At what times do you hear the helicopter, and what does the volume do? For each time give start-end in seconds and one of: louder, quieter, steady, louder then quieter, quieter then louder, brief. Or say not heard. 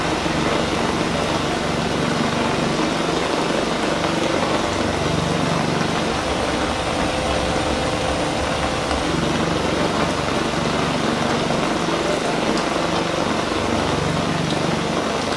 0.0-15.3 steady.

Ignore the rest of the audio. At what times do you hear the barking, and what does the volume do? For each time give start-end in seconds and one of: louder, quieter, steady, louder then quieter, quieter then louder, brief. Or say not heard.
not heard.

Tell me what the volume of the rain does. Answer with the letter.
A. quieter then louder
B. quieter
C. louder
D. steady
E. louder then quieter
D.